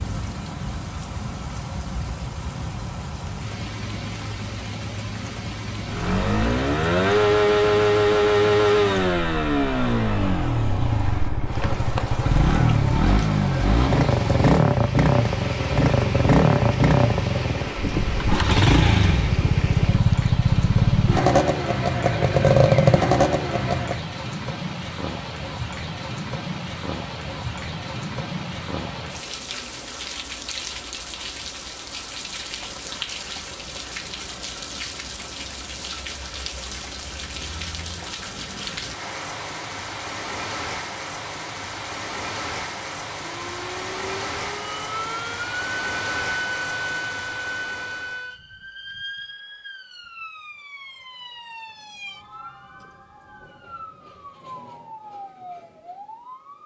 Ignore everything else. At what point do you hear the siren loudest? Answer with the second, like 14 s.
47 s.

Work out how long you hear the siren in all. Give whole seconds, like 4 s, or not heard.
13 s.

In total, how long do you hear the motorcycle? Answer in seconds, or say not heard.
18 s.